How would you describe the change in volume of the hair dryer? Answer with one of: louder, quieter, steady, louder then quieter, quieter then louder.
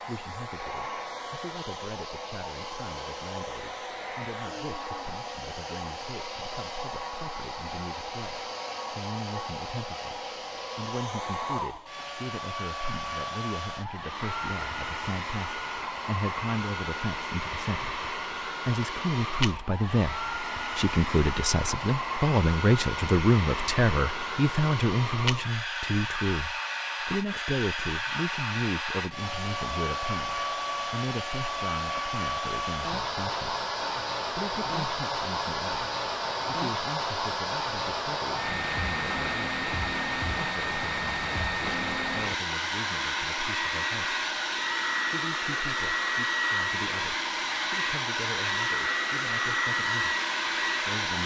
louder.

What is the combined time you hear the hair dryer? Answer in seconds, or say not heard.
51 s.